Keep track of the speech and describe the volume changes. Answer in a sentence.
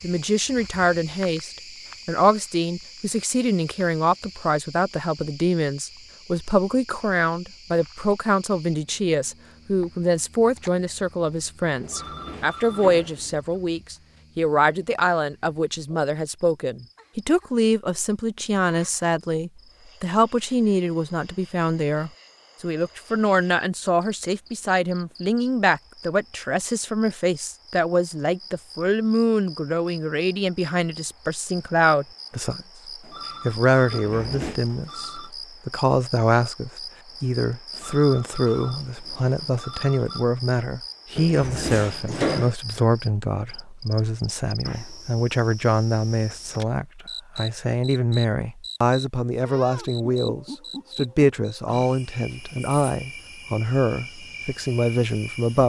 The loudness of the speech stays about the same.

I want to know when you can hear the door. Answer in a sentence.
You can hear the door from 11.8 to 13.2 s, from 33.9 to 34.6 s and from 41.1 to 42.5 s.